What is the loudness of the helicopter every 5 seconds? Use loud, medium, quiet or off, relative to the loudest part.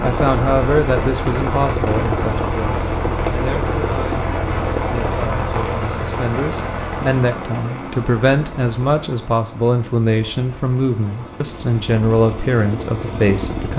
loud, medium, medium.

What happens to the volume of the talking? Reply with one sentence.
The volume of the talking goes down, then up.